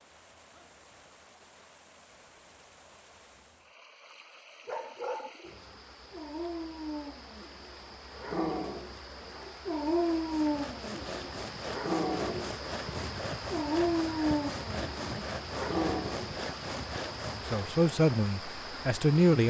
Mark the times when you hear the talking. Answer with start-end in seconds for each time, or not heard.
17.4-19.4.